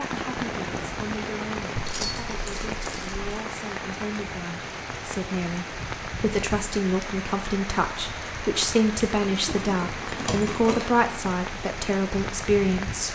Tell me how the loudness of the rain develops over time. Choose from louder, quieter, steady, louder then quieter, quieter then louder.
steady.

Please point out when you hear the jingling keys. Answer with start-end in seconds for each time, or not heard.
1.8-3.2, 9.4-10.8.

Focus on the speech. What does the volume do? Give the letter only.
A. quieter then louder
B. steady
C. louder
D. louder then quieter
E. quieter
C.